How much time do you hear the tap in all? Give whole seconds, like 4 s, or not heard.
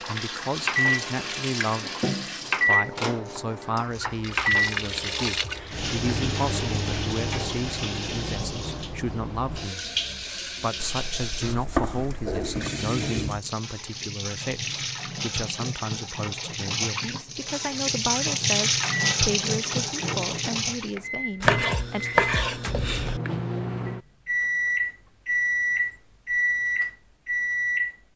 21 s.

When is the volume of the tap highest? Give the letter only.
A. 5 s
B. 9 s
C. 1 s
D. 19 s
D.